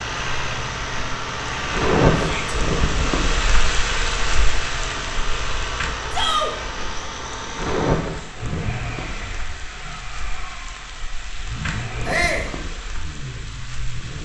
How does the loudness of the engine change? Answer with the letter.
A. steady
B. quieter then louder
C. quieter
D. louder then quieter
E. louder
C.